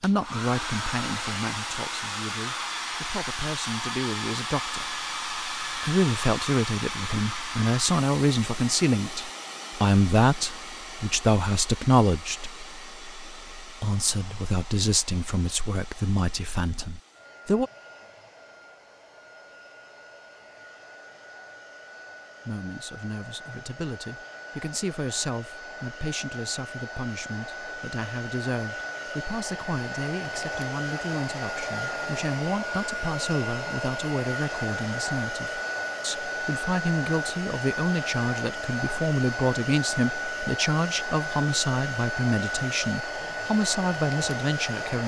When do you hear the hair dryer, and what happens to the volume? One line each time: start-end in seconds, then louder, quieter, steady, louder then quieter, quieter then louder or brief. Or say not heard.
0.0-45.0 quieter then louder.